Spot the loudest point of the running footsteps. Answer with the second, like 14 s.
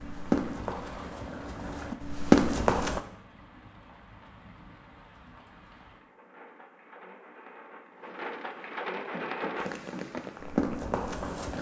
2 s.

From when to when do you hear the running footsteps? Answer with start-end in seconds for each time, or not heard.
0.0-3.0, 8.9-11.5.